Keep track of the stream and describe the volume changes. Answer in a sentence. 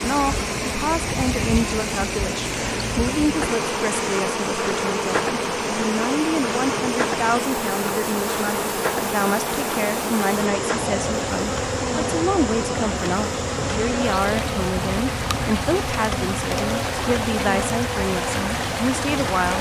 The volume of the stream stays about the same.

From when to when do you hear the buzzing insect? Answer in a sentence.
You can hear the buzzing insect from 0.0 to 19.5 s.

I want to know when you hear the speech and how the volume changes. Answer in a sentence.
The speech can be heard from 0.0 to 19.5 s, at a steady volume.